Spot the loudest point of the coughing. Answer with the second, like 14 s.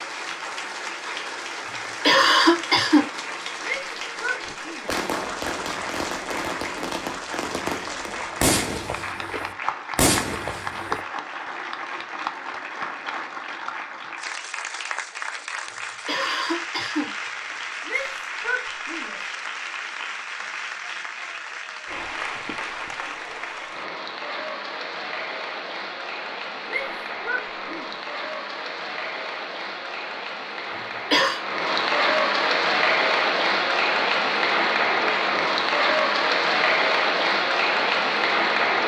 2 s.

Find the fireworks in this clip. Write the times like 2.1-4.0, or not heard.
4.5-11.0.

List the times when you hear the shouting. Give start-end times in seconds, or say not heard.
3.6-5.0, 17.9-19.1, 26.6-27.9.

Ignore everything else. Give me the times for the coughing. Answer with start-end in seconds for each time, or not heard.
1.7-3.0, 15.8-17.6, 30.7-31.4.